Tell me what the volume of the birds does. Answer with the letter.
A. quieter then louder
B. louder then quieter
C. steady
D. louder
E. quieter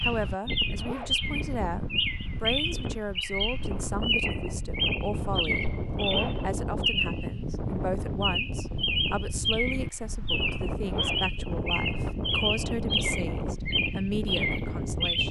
C.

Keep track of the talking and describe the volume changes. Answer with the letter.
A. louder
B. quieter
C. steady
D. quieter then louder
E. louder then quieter
C.